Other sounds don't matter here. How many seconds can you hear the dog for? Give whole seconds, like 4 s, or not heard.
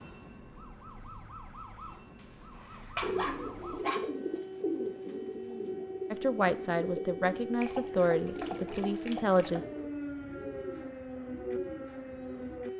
4 s.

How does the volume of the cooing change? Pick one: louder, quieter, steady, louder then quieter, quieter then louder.
quieter.